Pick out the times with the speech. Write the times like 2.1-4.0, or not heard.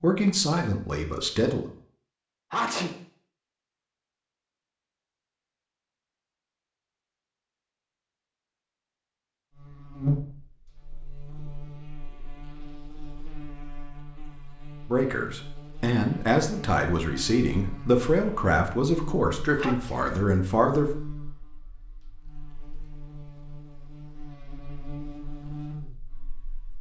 0.0-1.6, 14.8-20.9.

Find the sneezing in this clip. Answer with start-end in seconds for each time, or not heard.
2.5-3.0, 19.6-20.1.